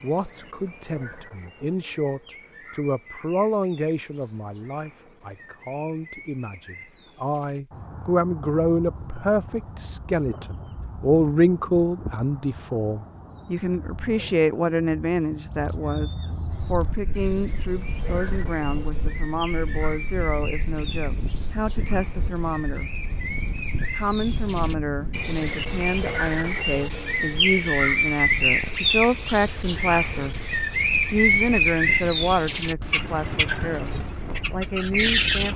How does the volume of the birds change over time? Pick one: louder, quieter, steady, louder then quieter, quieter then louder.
louder.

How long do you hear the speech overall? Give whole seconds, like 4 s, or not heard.
34 s.